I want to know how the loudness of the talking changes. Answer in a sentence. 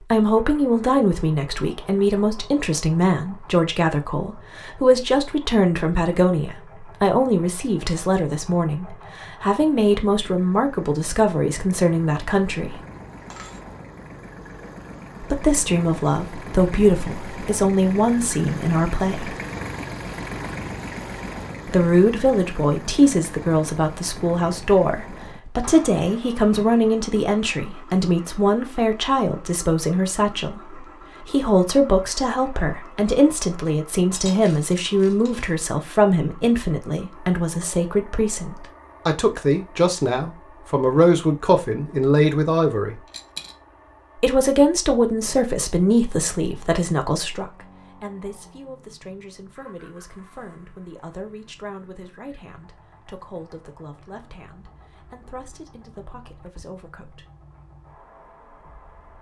The loudness of the talking goes down.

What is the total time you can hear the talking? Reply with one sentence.
The talking can be heard for 51 seconds in total.